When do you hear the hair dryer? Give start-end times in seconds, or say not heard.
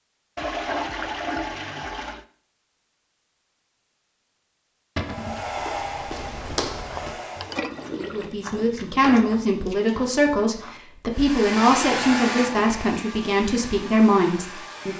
5.0-7.6, 11.1-14.9.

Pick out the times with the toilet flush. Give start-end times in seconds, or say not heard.
0.3-2.2, 6.9-8.3, 11.7-12.9.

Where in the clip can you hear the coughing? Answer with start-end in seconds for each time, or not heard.
not heard.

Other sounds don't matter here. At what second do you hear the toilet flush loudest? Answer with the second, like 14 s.
1 s.